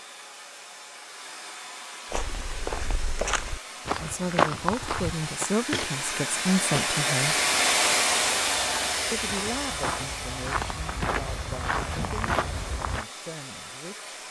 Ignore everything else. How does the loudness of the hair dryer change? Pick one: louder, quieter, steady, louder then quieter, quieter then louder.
louder then quieter.